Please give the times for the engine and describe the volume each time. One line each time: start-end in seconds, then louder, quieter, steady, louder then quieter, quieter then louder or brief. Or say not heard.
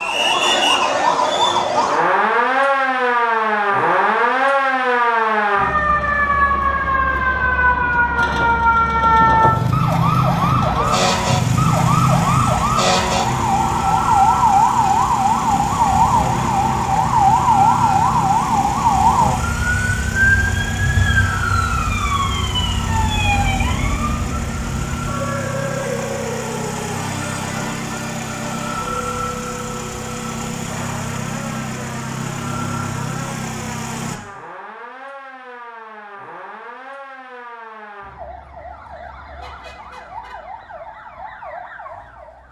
8.2-34.2 steady.